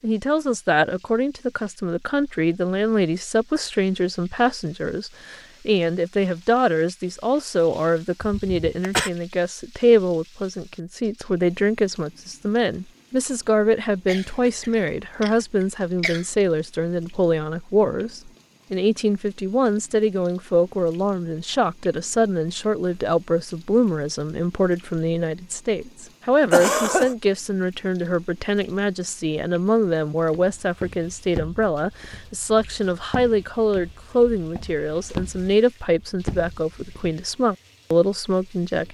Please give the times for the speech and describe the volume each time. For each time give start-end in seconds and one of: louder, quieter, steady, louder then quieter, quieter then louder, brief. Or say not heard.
0.0-38.9 steady.